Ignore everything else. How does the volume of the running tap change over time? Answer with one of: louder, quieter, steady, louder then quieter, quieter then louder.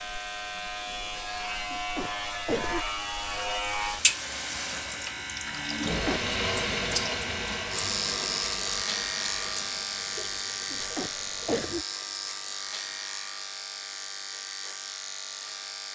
louder then quieter.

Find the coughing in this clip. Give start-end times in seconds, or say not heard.
1.7-2.9, 5.8-6.3, 10.7-11.8.